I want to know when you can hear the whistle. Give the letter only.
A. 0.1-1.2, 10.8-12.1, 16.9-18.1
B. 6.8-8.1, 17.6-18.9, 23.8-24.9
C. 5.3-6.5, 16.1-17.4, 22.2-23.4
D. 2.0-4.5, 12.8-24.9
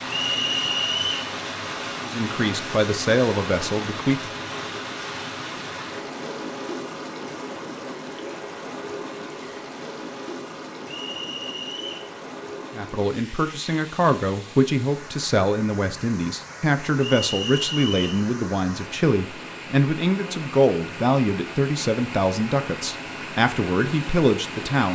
A.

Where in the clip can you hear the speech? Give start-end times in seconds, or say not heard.
2.0-4.5, 12.8-24.9.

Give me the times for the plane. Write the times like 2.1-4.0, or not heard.
not heard.